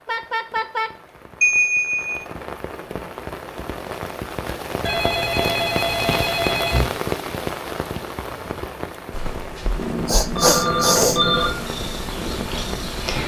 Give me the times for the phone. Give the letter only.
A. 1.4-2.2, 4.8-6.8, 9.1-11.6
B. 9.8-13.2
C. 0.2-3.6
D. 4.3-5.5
A.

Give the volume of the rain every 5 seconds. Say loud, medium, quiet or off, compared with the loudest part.
loud, loud, medium.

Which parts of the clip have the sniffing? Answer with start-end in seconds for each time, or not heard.
10.1-11.2.